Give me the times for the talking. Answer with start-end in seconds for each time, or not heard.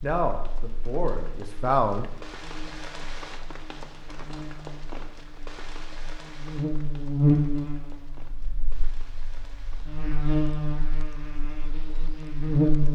0.0-2.1.